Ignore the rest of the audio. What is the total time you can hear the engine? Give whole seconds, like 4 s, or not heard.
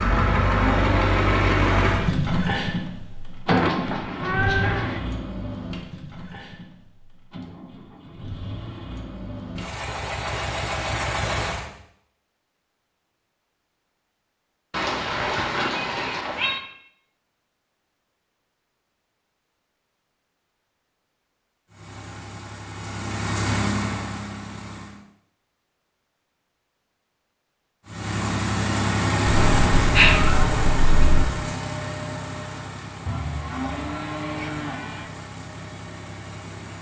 24 s.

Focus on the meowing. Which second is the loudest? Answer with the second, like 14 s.
30 s.